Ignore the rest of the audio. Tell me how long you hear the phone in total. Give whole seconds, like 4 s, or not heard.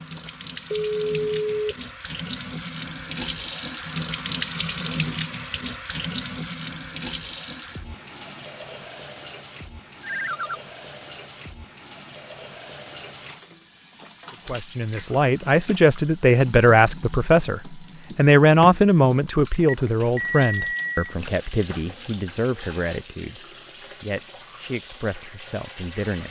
4 s.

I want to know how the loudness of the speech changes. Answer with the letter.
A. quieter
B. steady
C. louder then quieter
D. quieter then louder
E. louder
A.